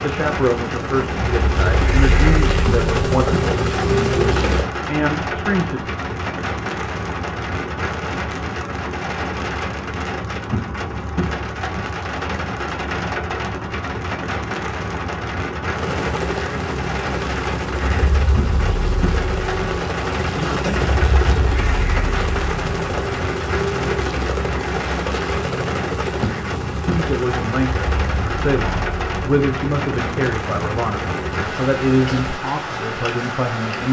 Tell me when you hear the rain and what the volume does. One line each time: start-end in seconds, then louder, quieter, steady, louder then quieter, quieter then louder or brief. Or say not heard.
0.0-33.8 steady.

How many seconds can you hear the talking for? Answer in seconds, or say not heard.
13 s.